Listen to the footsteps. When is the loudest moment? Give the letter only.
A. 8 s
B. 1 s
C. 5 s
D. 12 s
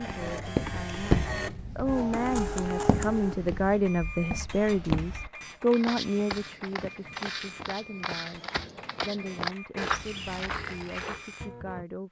B.